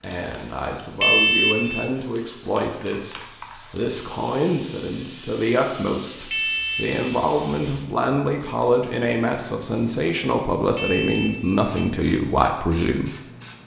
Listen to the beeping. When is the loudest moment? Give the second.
1 s.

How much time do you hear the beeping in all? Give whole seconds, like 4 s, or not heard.
3 s.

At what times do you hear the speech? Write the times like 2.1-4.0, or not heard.
0.0-13.1.